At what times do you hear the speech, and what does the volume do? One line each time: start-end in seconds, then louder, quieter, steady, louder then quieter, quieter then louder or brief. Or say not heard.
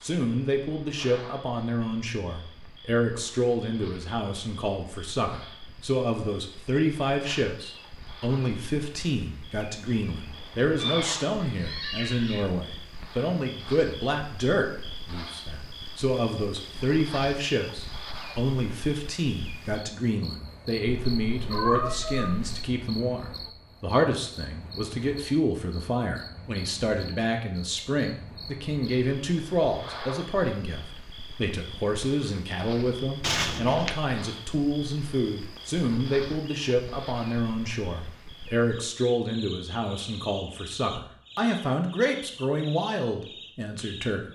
0.0-44.3 steady.